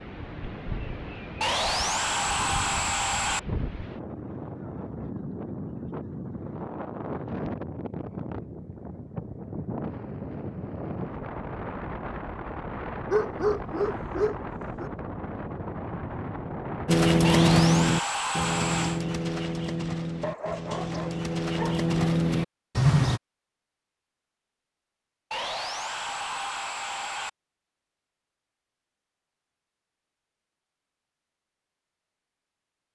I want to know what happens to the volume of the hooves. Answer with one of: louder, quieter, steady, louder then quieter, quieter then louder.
quieter then louder.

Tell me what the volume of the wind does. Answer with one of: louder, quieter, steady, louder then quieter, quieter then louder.
steady.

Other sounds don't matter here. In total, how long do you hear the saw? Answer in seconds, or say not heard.
6 s.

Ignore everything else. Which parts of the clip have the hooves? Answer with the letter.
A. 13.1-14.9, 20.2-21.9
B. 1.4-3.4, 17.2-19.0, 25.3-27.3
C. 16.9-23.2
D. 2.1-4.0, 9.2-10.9
C.